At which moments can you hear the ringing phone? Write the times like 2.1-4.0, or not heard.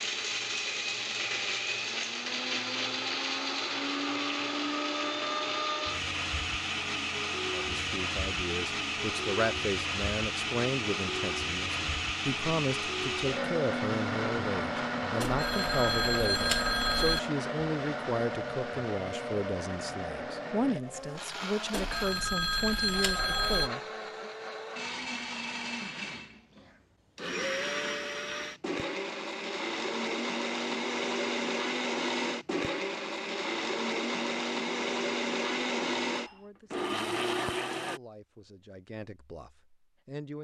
15.2-17.2, 21.7-23.7.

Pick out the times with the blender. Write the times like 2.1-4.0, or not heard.
0.0-38.0.